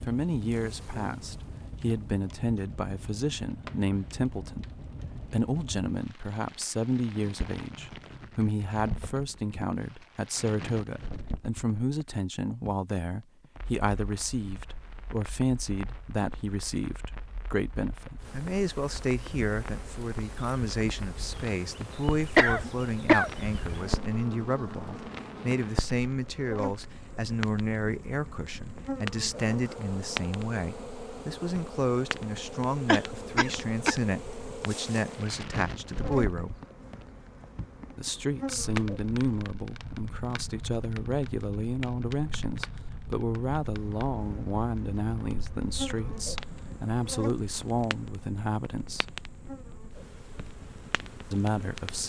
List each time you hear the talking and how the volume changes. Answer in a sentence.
You can hear the talking from 0.1 to 36.6 s, at a steady volume; from 37.9 to 49.1 s, at a steady volume; and briefly from 51.3 to 52.0 s.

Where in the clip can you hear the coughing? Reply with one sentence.
You can hear the coughing from 22.4 to 23.9 s and from 32.9 to 34.0 s.